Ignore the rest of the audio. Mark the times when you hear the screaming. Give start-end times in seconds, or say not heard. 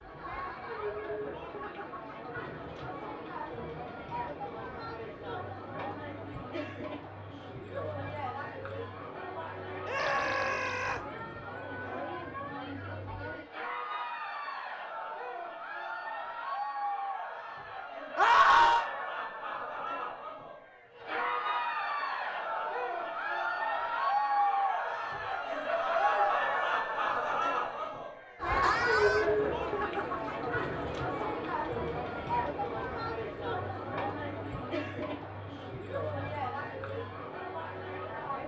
9.8-11.0, 18.1-18.9, 28.6-29.3.